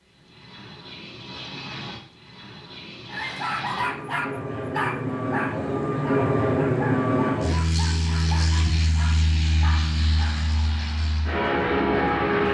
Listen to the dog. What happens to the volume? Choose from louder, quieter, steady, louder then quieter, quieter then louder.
quieter.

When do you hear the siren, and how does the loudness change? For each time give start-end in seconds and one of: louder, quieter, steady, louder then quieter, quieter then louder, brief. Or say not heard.
not heard.